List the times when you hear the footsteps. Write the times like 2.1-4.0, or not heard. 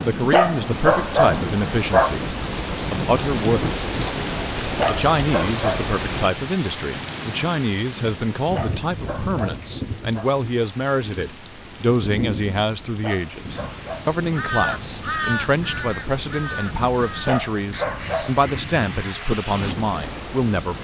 not heard.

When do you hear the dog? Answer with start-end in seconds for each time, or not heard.
0.1-2.2, 4.6-6.0, 8.3-10.3, 12.8-14.8, 17.1-18.4.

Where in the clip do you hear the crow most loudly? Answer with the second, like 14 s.
15 s.